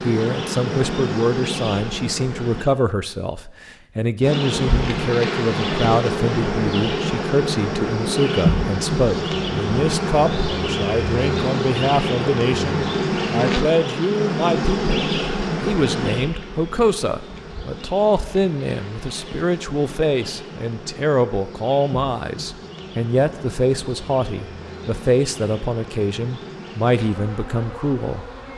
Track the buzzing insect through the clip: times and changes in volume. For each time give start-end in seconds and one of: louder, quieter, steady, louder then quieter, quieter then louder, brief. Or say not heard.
0.0-2.7 brief
4.2-28.5 quieter.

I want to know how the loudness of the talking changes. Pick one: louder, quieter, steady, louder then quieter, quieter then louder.
steady.